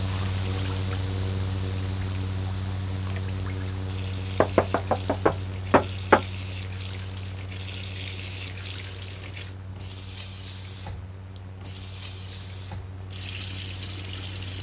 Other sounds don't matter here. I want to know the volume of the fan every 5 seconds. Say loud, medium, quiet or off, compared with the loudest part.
loud, medium, medium.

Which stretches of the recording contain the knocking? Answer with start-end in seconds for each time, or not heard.
4.4-6.2.